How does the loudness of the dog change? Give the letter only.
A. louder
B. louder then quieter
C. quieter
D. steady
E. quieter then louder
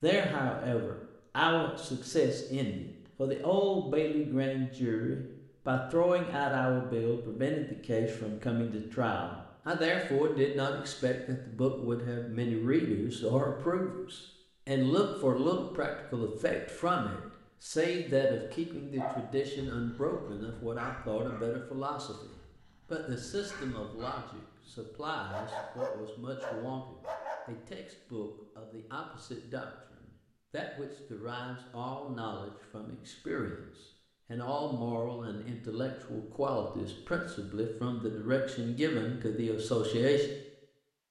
E.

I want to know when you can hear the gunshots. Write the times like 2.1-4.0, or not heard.
not heard.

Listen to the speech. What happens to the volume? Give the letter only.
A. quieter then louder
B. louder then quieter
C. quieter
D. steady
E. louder
A.